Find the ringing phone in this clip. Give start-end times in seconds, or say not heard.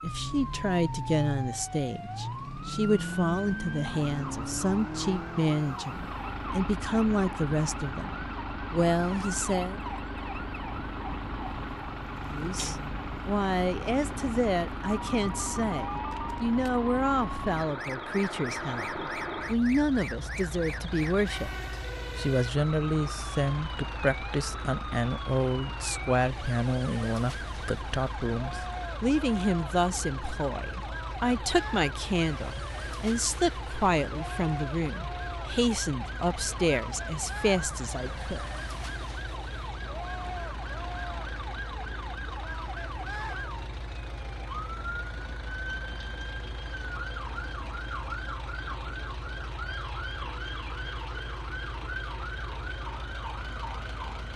14.8-16.7.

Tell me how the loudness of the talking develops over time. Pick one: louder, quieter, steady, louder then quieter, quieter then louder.
steady.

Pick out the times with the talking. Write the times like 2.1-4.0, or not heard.
0.0-9.8, 12.3-38.5.